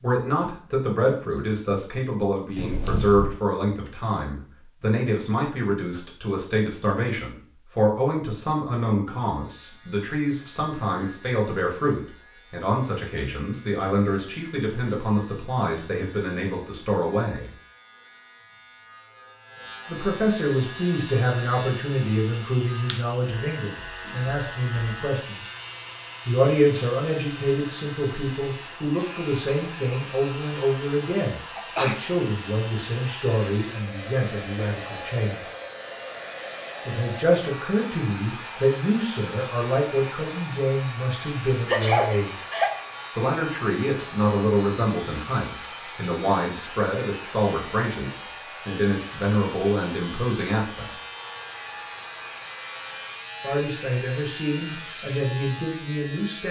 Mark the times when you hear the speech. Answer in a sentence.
You can hear the speech from 0.0 to 17.5 s, from 19.9 to 25.4 s, from 26.2 to 35.4 s, from 36.9 to 42.4 s, from 43.1 to 50.9 s and from 53.4 to 56.4 s.